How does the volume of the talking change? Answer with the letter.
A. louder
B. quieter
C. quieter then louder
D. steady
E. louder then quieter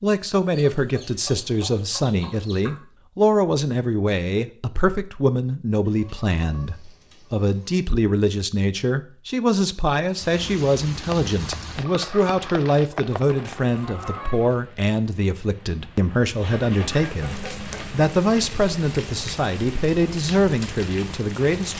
D.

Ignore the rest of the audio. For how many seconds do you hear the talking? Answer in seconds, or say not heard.
22 s.